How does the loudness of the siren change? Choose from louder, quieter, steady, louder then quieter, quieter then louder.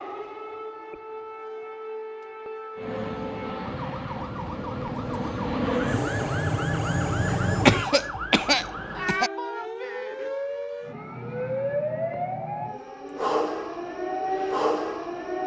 louder.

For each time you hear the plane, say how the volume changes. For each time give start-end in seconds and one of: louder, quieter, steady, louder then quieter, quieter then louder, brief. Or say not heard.
2.8-8.0 louder.